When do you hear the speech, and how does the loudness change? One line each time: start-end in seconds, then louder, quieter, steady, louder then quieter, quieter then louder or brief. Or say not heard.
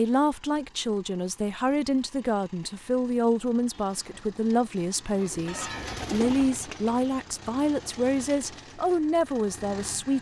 0.0-10.1 steady.